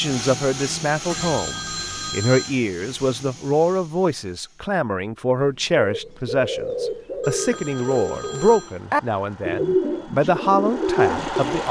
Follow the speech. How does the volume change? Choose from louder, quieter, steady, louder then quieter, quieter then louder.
steady.